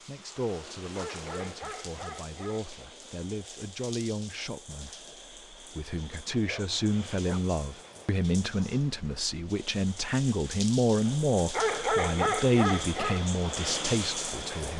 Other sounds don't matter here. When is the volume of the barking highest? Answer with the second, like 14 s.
12 s.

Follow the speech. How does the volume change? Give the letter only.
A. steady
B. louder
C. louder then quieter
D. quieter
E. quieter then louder
B.